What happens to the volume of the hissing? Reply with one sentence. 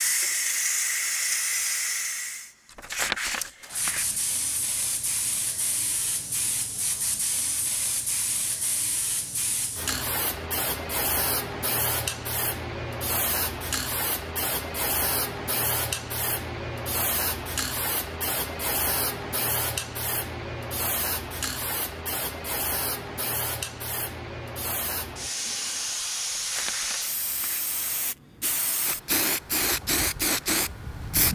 The loudness of the hissing stays about the same.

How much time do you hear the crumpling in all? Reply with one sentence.
You can hear the crumpling for 3 seconds altogether.